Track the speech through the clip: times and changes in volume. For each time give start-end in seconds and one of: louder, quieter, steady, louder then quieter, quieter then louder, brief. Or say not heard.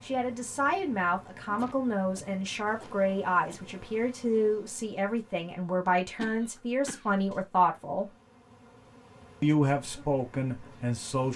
0.0-8.1 steady
9.4-11.3 brief.